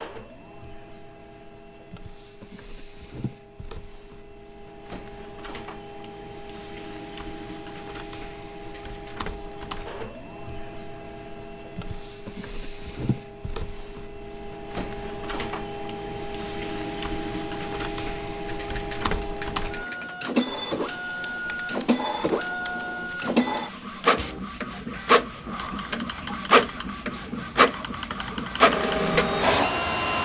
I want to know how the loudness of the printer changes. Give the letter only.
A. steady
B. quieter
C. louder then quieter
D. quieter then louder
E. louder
E.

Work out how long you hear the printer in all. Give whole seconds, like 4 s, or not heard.
30 s.